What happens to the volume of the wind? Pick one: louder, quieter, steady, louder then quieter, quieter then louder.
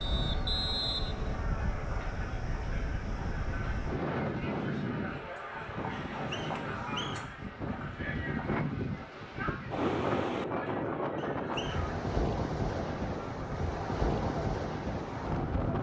louder.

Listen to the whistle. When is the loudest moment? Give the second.
1 s.